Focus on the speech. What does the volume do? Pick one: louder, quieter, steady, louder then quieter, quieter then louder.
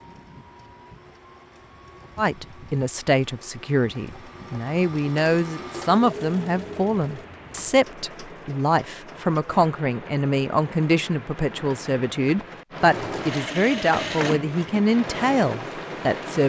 steady.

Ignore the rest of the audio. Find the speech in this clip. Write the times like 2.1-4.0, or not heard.
2.1-16.4.